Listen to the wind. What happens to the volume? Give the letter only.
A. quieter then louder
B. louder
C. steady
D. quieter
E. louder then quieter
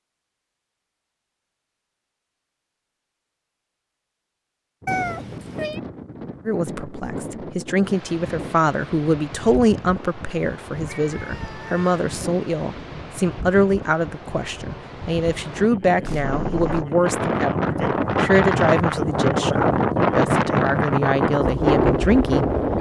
B.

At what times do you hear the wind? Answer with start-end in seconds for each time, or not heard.
4.8-22.7.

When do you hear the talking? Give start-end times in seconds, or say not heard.
6.5-22.4.